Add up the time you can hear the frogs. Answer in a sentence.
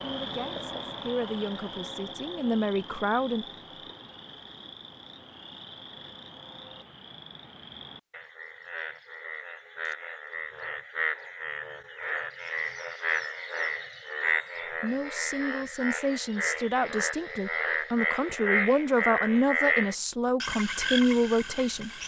You can hear the frogs for 22 seconds altogether.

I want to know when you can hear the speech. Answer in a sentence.
The speech can be heard from 0.0 to 3.9 s and from 14.8 to 21.9 s.